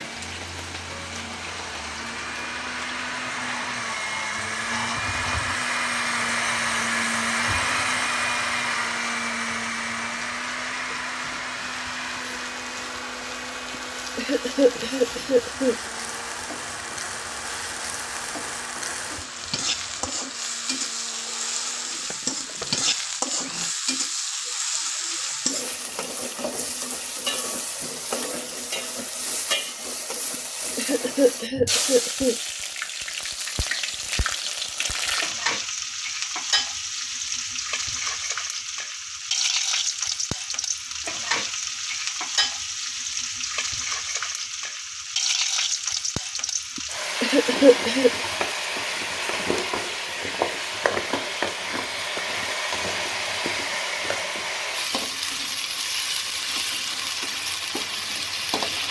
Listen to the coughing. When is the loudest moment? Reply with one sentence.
The loudest moment of the coughing is at 48 seconds.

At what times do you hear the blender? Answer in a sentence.
The blender can be heard from 0.0 to 23.8 s.